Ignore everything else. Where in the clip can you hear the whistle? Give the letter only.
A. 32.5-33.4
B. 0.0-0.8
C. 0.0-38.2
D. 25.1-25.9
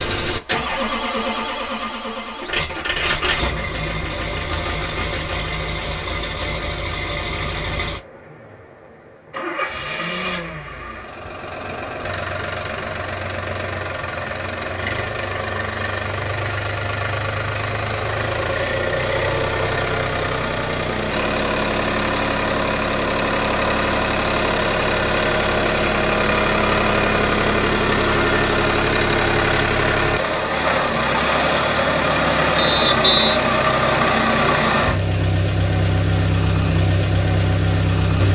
A.